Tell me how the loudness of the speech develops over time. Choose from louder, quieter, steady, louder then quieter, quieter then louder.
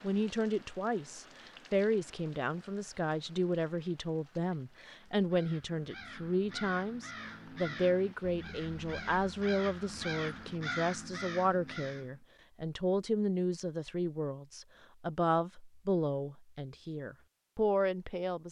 steady.